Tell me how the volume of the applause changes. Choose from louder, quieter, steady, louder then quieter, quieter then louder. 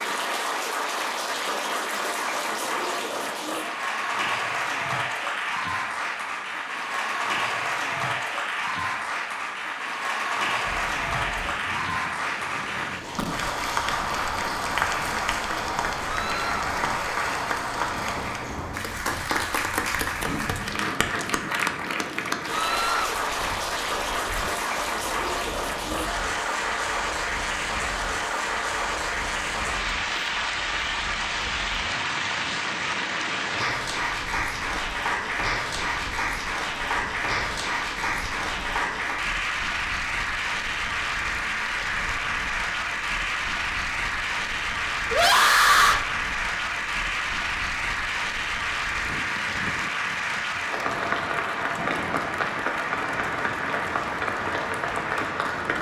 steady.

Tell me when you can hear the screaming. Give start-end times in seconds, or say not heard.
16.1-16.6, 22.5-23.1, 45.1-46.0.